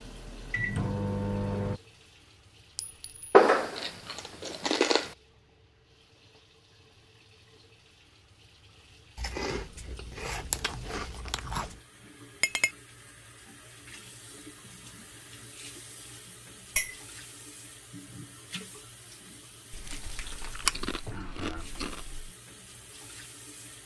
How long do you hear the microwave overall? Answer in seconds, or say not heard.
2 s.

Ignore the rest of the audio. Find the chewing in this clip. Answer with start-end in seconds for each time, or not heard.
3.3-5.2, 9.2-11.8, 19.7-22.3.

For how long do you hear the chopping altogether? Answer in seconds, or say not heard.
not heard.